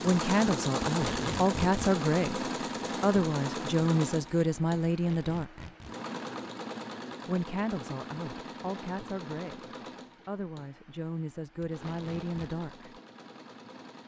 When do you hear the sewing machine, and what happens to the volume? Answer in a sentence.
The sewing machine can be heard from 0.0 to 14.0 s, getting quieter.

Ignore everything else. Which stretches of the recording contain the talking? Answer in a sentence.
The talking can be heard from 0.0 to 5.7 s and from 7.2 to 12.9 s.